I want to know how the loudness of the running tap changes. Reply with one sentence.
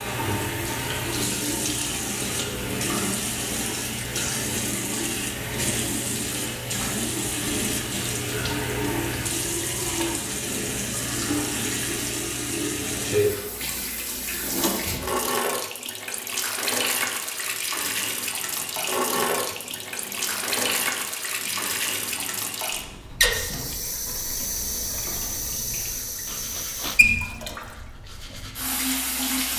The loudness of the running tap stays about the same.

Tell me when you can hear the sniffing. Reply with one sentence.
The sniffing can be heard from 26.2 to 27.0 s.